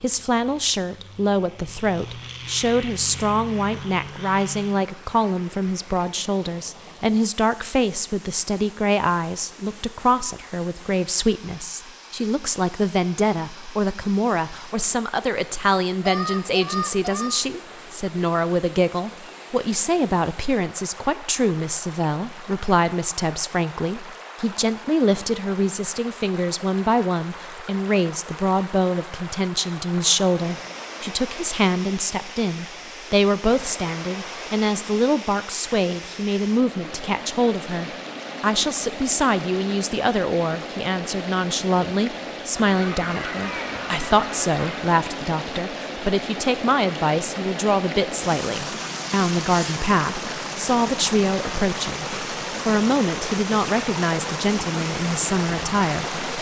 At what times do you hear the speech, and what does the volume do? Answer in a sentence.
The speech can be heard from 0.0 to 56.2 s, at a steady volume.